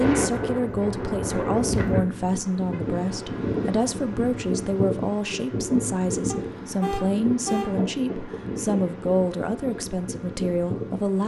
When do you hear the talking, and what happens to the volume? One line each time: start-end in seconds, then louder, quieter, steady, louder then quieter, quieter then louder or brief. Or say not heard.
0.0-11.2 steady.